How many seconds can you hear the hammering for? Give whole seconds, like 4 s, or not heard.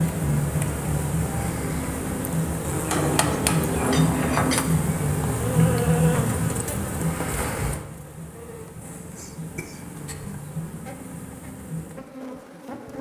2 s.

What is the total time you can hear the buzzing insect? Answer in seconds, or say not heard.
13 s.